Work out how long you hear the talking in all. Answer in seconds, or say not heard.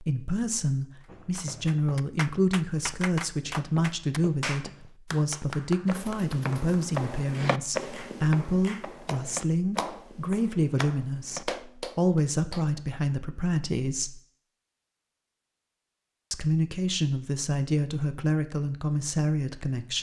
18 s.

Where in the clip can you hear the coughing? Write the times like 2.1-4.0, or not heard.
not heard.